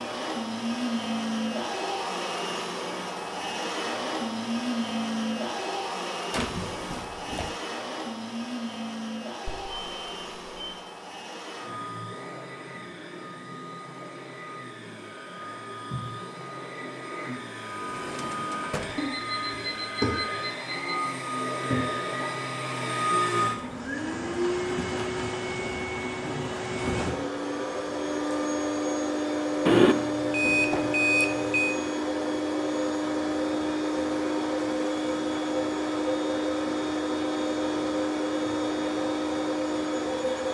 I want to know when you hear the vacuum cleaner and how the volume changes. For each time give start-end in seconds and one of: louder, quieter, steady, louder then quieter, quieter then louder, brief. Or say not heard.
0.0-40.4 quieter then louder.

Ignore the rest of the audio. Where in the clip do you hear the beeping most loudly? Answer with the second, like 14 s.
30 s.